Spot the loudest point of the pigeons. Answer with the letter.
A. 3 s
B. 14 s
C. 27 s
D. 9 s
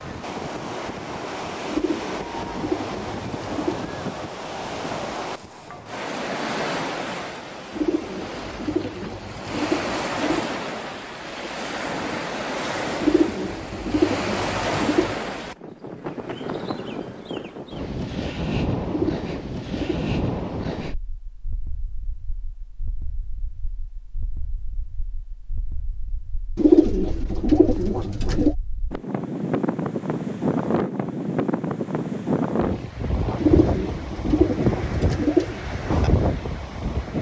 C.